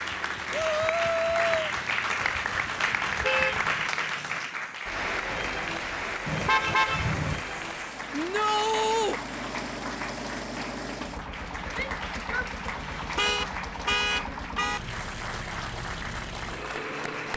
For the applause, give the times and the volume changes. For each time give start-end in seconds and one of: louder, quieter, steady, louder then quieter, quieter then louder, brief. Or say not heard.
0.0-17.3 quieter.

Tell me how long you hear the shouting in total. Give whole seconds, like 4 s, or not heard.
3 s.